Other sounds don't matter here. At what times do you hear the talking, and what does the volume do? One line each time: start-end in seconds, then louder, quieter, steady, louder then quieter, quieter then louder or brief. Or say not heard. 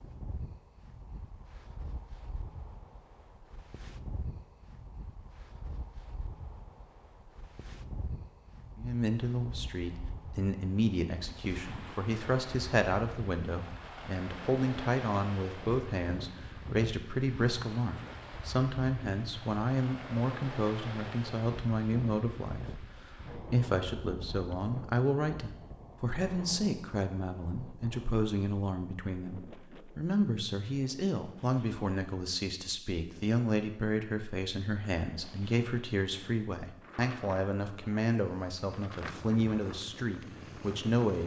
8.8-41.2 steady.